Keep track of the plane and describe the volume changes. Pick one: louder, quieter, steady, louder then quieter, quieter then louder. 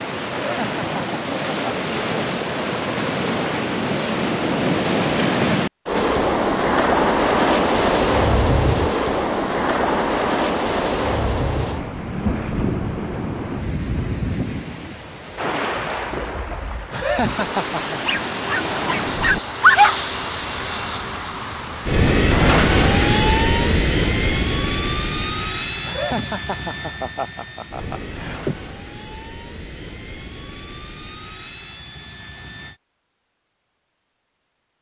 louder then quieter.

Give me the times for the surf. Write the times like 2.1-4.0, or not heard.
0.0-19.4.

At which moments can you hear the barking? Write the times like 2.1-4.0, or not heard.
18.1-19.9.